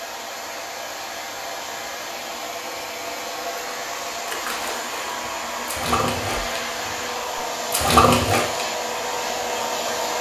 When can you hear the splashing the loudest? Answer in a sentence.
The volume of the splashing peaks at 8 seconds.